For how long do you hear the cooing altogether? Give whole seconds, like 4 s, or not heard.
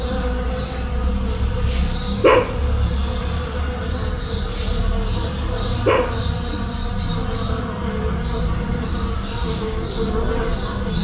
not heard.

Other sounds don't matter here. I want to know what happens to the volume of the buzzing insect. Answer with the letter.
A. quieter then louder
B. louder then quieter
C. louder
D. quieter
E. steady
E.